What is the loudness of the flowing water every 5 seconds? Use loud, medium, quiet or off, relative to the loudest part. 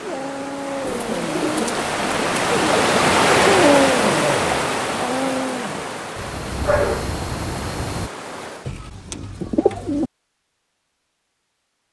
loud, medium, off.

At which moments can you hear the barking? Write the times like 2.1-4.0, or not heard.
0.0-1.6, 3.5-8.1.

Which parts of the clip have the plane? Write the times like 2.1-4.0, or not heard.
not heard.